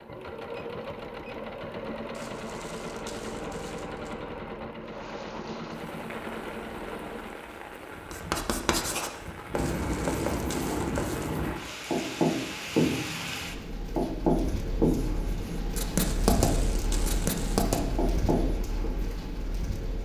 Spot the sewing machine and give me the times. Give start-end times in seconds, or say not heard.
0.0-7.4.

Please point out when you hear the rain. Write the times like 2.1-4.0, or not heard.
4.8-20.0.